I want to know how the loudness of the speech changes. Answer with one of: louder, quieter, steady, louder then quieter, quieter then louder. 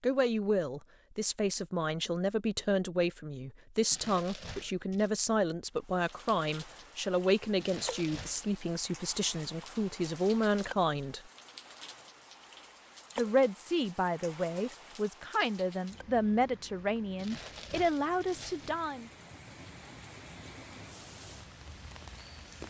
steady.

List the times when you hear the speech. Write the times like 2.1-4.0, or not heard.
0.0-11.2, 13.2-19.1.